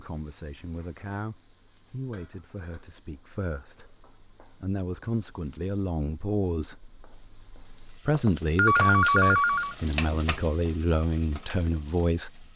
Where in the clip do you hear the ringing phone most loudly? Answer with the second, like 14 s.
9 s.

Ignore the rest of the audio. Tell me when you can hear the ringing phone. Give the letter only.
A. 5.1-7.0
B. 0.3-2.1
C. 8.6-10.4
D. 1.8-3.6
C.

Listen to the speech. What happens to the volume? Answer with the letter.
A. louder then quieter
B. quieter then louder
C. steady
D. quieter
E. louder
E.